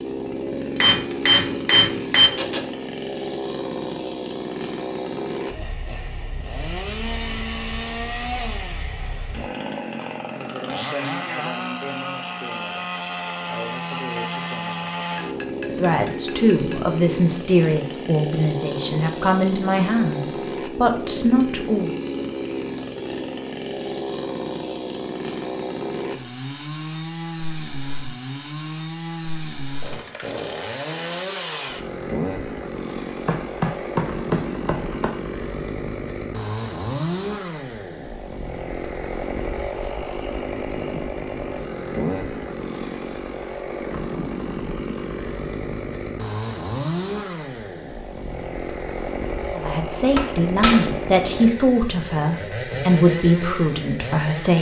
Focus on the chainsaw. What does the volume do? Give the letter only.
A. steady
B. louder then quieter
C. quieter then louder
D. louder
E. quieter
A.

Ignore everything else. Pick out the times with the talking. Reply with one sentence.
The talking can be heard from 15.8 to 21.9 s and from 49.5 to 54.5 s.